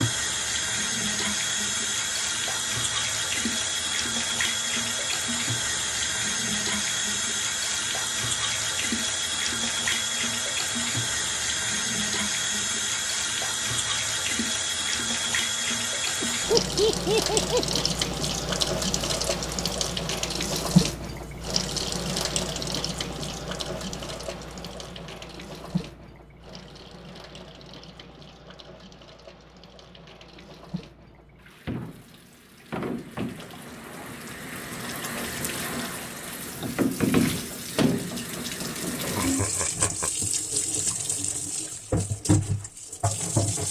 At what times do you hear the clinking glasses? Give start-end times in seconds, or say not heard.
not heard.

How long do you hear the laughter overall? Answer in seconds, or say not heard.
3 s.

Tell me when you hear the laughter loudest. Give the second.
17 s.